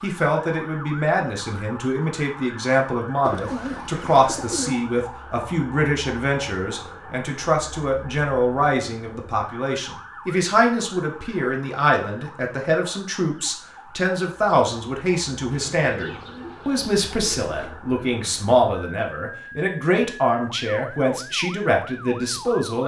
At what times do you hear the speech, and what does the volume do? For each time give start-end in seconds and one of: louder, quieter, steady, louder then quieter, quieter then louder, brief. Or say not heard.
0.0-22.8 steady.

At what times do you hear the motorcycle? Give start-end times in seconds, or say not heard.
not heard.